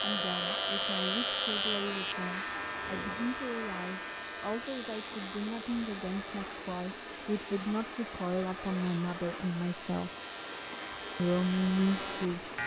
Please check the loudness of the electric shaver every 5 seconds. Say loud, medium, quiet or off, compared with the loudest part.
loud, quiet, medium.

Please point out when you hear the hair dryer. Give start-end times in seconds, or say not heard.
0.0-12.6.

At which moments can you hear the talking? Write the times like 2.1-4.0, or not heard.
0.0-10.1, 11.2-12.4.